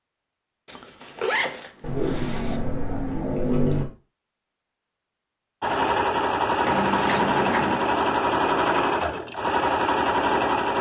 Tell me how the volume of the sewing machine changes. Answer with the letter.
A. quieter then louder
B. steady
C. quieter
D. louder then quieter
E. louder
B.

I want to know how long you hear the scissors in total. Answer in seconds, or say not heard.
3 s.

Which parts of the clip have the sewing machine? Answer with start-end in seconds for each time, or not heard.
5.6-10.7.